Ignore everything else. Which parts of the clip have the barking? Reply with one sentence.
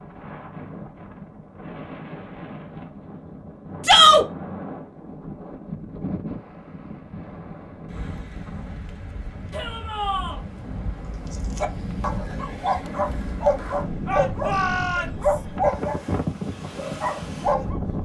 You can hear the barking from 11.3 to 18.0 s.